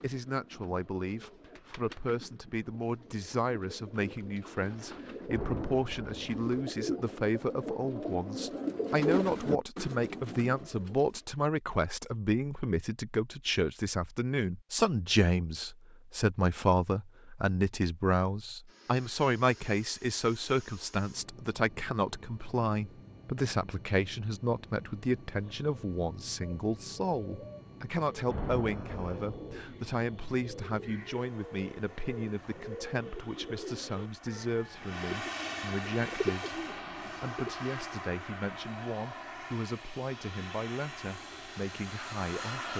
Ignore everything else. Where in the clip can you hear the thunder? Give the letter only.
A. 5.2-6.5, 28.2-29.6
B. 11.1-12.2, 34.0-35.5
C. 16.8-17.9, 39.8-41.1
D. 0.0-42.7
A.